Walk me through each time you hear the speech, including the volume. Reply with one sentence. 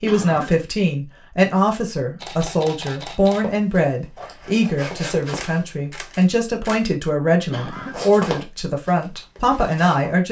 The speech can be heard from 0.0 to 10.2 s, at a steady volume.